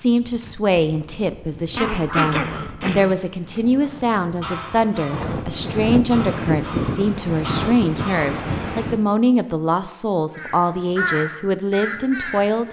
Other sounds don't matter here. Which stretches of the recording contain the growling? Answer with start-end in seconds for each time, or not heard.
1.8-3.1.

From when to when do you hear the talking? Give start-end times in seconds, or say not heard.
0.0-12.6.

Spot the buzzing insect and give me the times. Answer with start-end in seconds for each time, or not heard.
not heard.